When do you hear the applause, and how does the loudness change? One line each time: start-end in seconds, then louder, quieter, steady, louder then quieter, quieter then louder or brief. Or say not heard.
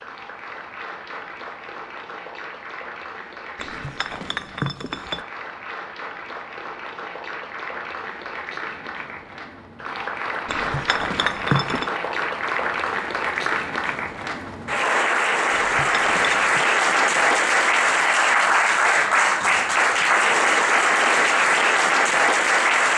0.0-22.9 louder.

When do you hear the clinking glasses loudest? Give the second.
11 s.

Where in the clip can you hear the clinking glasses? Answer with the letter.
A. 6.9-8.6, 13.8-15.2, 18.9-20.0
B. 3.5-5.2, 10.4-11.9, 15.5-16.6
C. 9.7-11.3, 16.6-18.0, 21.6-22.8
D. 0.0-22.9
B.